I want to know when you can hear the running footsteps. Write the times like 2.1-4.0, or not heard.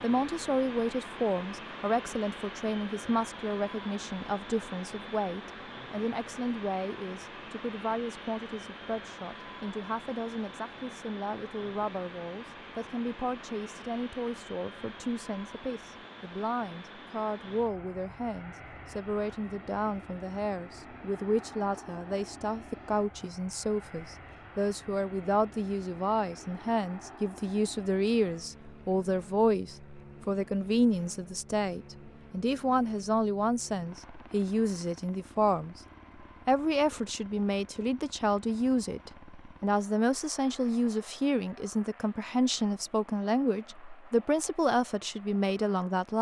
not heard.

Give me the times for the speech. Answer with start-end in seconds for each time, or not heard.
0.0-35.8, 36.5-46.1.